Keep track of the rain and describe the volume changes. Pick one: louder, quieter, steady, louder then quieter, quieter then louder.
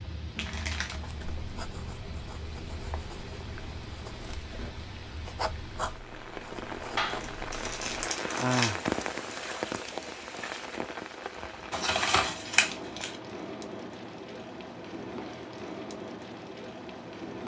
louder then quieter.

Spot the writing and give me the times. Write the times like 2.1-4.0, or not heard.
0.9-8.1.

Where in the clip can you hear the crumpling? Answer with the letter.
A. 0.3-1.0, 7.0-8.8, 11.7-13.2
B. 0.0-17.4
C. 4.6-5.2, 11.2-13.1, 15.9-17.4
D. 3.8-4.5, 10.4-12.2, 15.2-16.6
A.